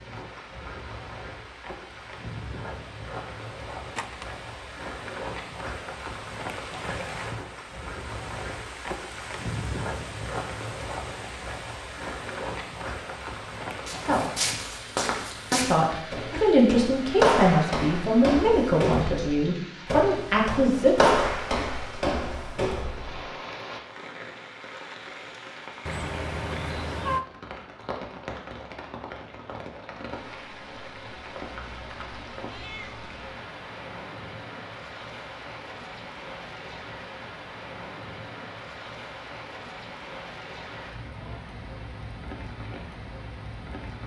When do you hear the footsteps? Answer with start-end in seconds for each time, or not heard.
13.8-23.2.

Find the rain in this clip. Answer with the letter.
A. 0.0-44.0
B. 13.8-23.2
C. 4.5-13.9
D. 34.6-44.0
A.